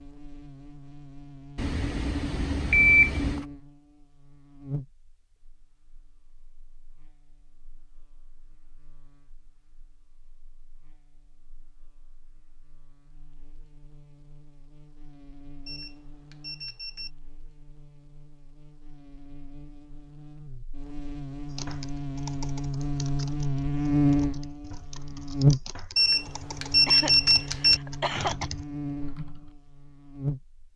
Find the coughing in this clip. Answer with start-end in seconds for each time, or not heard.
26.9-28.5.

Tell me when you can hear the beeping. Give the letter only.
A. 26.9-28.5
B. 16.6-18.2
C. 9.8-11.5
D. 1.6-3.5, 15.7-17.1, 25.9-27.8
D.